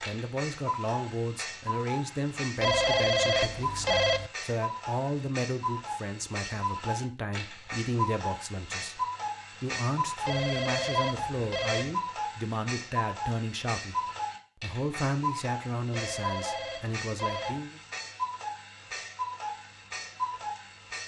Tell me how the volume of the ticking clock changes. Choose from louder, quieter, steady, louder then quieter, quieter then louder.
steady.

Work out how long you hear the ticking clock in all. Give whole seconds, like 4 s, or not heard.
21 s.